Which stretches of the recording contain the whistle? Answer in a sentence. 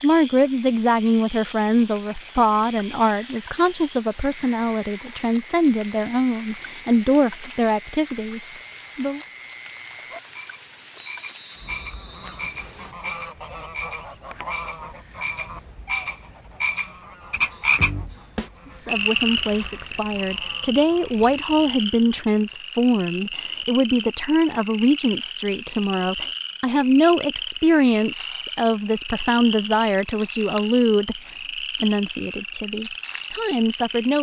The whistle can be heard from 10.9 to 12.9 s.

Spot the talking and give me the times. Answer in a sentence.
You can hear the talking from 0.0 to 9.2 s, from 18.8 to 31.2 s and from 31.8 to 34.1 s.